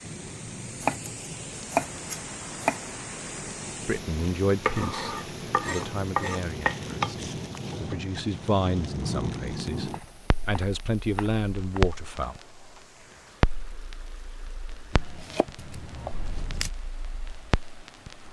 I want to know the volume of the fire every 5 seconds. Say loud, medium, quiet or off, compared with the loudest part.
medium, loud, loud, medium.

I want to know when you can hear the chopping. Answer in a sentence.
The chopping can be heard from 0.8 to 2.8 s, from 4.7 to 7.2 s, from 9.3 to 11.8 s and from 14.9 to 16.7 s.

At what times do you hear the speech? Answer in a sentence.
You can hear the speech from 3.9 to 12.3 s.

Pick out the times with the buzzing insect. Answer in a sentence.
You can't hear the buzzing insect here.